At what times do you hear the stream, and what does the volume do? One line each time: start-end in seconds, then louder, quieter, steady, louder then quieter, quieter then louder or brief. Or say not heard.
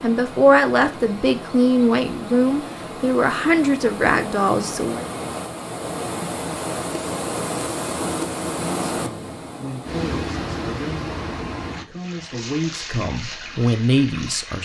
0.0-14.5 louder then quieter.